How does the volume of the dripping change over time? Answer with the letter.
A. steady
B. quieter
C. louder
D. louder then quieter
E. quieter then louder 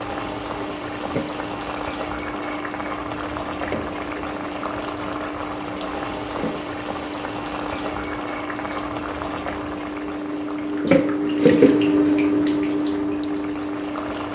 C.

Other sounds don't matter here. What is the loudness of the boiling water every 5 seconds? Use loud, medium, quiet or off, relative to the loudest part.
loud, loud, medium.